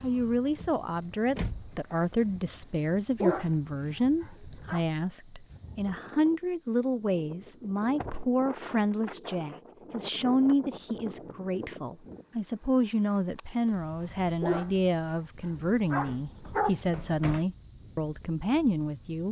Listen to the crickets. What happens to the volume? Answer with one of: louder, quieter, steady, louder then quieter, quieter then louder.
quieter then louder.